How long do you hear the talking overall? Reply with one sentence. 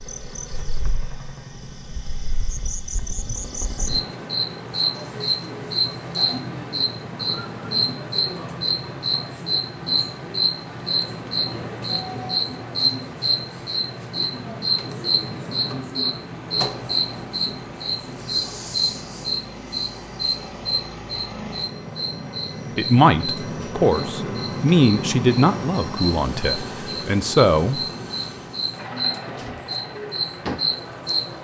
You can hear the talking for 5 seconds altogether.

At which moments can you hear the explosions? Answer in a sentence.
You can't hear the explosions here.